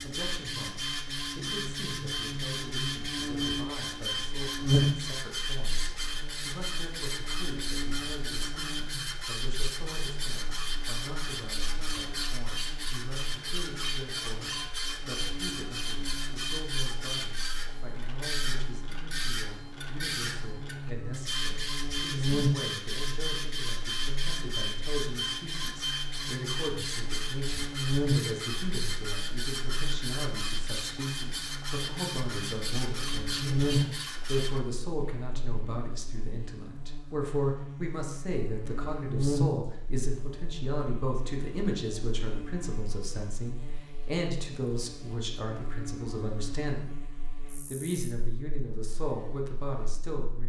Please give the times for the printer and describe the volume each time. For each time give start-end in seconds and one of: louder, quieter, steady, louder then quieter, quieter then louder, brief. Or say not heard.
0.0-34.6 steady.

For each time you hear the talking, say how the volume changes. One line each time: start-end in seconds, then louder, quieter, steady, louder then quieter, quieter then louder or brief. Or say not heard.
0.0-47.0 louder
47.6-50.4 brief.